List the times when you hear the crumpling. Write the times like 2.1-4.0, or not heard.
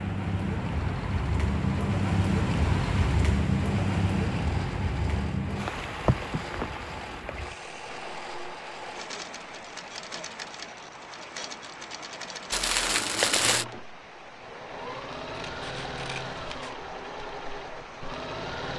12.5-13.7.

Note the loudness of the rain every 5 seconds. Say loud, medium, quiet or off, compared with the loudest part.
loud, medium, quiet, quiet.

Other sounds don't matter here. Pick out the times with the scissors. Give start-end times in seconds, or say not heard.
15.4-16.8.